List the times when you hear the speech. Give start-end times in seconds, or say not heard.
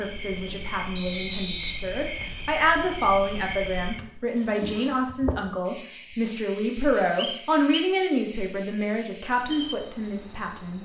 0.0-10.8.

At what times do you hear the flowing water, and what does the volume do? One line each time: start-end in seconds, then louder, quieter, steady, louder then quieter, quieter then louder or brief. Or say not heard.
not heard.